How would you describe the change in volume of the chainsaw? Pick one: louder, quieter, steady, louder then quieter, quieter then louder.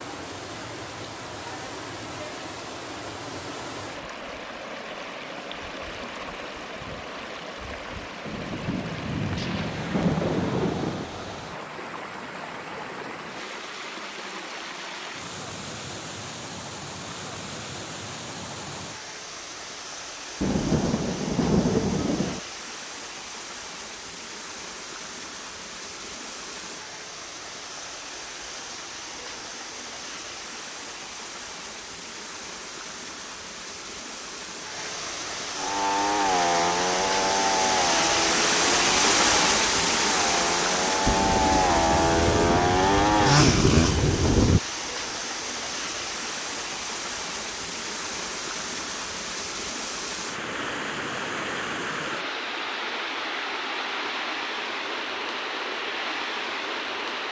quieter then louder.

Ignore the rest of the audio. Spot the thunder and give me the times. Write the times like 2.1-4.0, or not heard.
8.2-11.1, 20.4-22.4, 41.0-44.6.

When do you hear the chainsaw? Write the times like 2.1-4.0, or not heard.
35.5-44.0.